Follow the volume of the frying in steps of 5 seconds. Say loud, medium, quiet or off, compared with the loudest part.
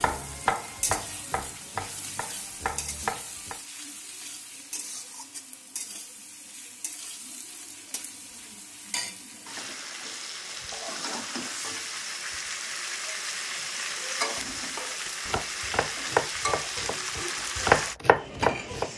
medium, medium, loud, loud.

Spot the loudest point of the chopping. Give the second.
18 s.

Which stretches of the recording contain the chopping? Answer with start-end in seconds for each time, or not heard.
0.0-3.6, 14.8-18.9.